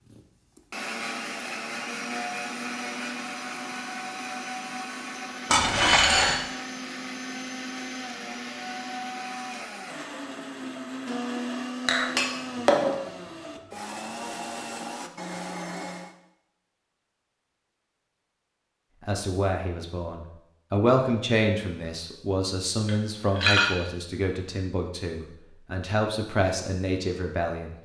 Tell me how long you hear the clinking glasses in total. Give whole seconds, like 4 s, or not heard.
3 s.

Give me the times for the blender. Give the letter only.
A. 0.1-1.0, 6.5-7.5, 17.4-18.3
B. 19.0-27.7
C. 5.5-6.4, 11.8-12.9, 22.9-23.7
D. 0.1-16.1
D.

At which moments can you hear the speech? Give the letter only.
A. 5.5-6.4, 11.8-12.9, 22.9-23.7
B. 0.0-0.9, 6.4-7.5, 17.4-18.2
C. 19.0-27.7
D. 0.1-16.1
C.